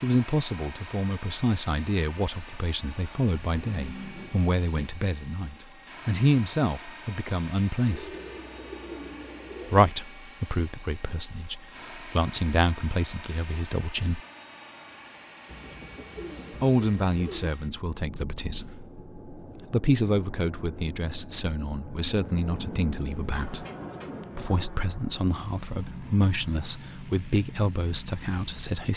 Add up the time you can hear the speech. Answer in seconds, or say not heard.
24 s.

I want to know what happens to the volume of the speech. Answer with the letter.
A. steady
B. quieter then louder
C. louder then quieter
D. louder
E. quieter
A.